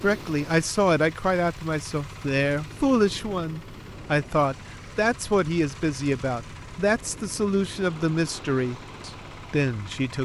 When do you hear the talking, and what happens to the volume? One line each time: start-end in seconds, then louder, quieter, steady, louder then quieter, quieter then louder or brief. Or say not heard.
0.0-10.1 steady.